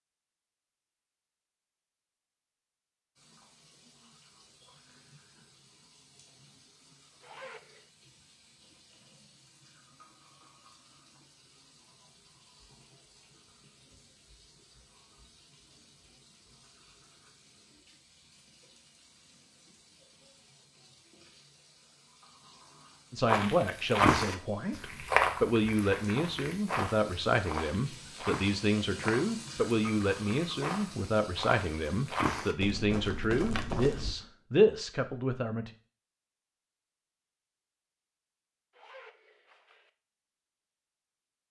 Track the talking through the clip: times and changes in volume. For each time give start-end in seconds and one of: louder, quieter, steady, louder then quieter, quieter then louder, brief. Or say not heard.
23.1-35.7 steady.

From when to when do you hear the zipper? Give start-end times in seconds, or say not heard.
7.2-7.9, 38.7-39.9.